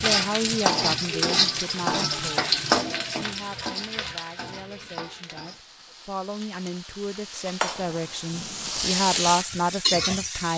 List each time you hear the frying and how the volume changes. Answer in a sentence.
You can hear the frying from 0.0 to 10.5 s, getting quieter then louder.